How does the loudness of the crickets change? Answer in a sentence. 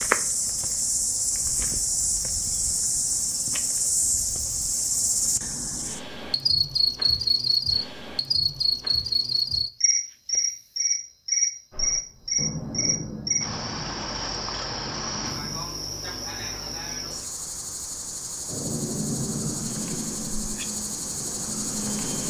The volume of the crickets goes down.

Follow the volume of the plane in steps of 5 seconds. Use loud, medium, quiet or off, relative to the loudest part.
off, off, medium, loud, loud.